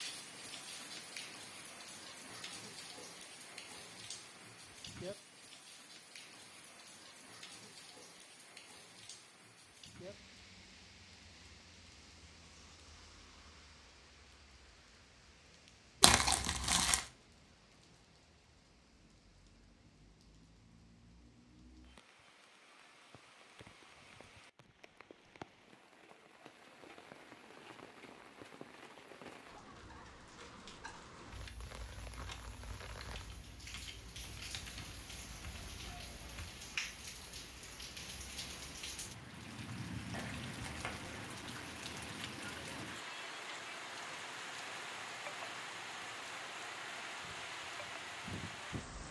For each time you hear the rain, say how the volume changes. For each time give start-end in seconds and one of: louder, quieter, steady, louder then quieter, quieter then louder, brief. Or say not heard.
0.0-49.0 quieter then louder.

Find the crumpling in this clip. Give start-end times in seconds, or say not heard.
16.0-17.1, 40.1-41.1.